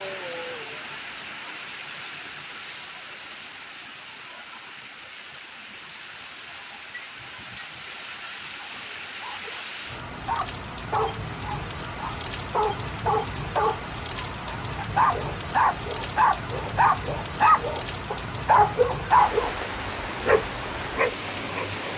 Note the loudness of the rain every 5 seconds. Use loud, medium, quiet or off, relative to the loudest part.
medium, medium, loud, loud, loud.